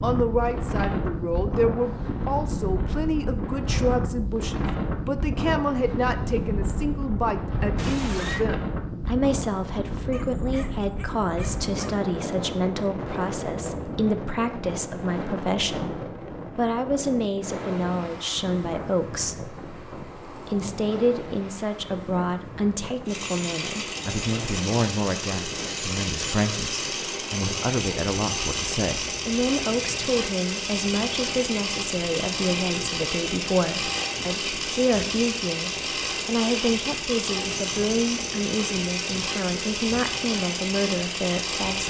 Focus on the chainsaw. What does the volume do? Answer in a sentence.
The loudness of the chainsaw stays about the same.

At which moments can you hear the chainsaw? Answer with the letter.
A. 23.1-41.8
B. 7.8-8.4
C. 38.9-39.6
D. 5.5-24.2
A.